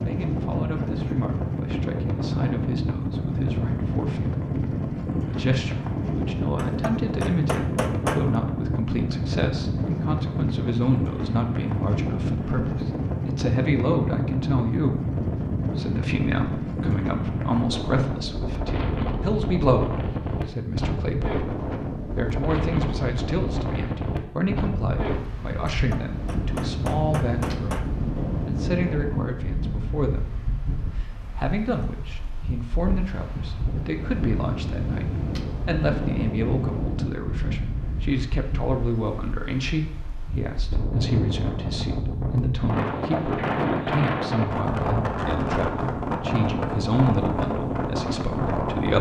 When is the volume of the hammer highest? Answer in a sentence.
The loudest moment of the hammer is at 8 seconds.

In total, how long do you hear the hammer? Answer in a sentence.
You can hear the hammer for 4 seconds altogether.